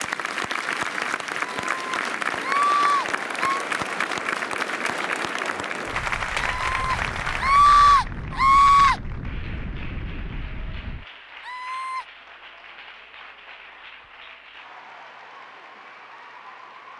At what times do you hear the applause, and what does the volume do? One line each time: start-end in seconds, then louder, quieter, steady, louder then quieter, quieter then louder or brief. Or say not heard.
0.0-16.9 quieter.